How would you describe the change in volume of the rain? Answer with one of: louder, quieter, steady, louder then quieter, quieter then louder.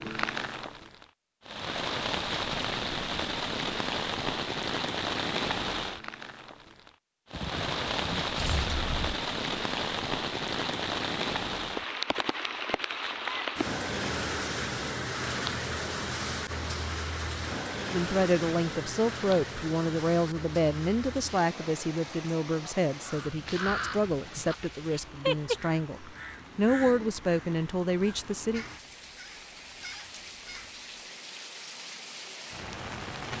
quieter.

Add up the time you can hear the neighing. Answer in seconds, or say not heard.
2 s.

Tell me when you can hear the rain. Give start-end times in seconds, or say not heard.
0.0-33.3.